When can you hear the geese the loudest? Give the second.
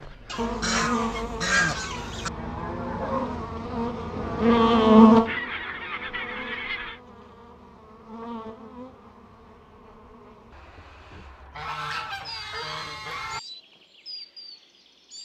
2 s.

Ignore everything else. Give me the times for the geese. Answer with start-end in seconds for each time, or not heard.
0.3-2.3, 5.2-7.0, 11.6-13.4.